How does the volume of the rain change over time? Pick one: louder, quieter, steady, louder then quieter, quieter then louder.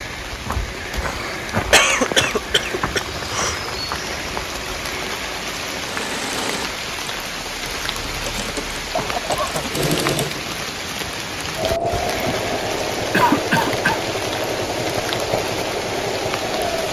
steady.